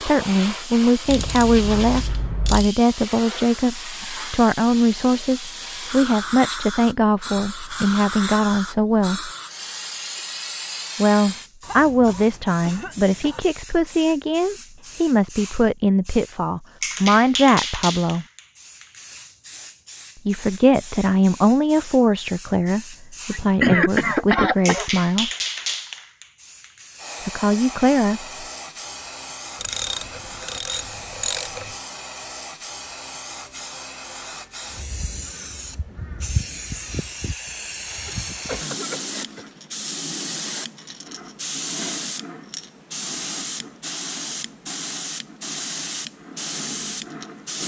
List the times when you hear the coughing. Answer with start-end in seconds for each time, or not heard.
11.6-13.4, 23.3-24.9, 38.0-39.5.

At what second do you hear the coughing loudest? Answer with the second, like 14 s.
24 s.